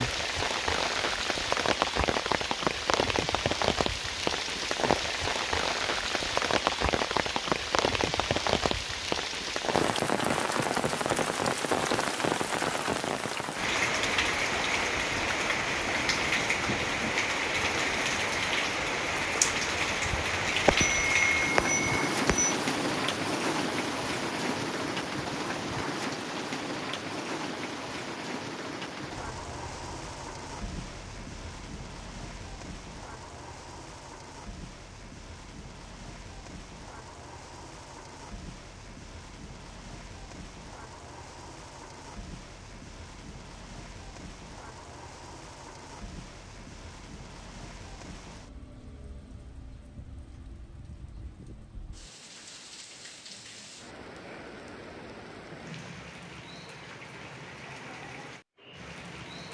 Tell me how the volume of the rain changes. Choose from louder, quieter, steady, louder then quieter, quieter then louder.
quieter.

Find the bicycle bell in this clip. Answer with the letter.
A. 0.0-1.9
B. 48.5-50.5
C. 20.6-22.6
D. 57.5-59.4
C.